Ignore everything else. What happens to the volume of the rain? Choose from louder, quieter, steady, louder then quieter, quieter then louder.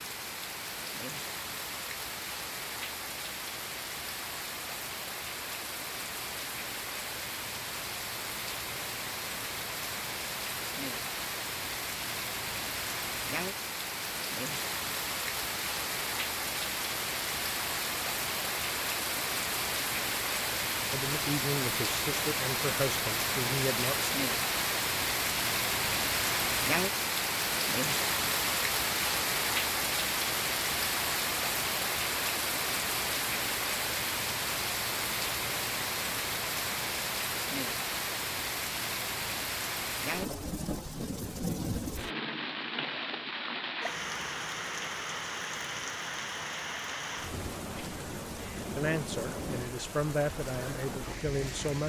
louder then quieter.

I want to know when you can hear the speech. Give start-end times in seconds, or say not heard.
20.9-24.1, 48.4-51.8.